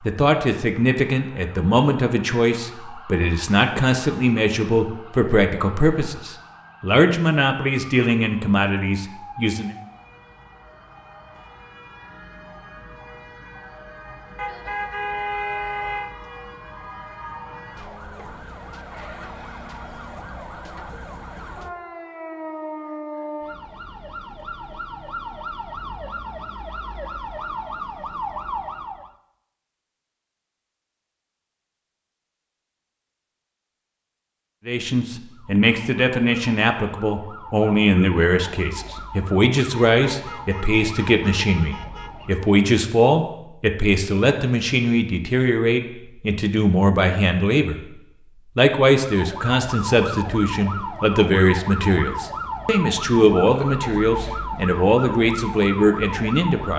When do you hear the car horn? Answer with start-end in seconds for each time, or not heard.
14.3-16.1, 39.8-42.3.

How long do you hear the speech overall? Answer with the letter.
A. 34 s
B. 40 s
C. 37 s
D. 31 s
D.